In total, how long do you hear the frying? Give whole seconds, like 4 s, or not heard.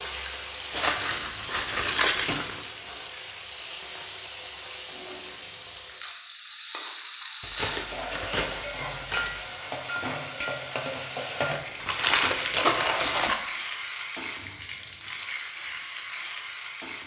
17 s.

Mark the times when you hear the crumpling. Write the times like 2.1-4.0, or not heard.
0.7-2.6, 7.4-9.4, 11.5-13.3.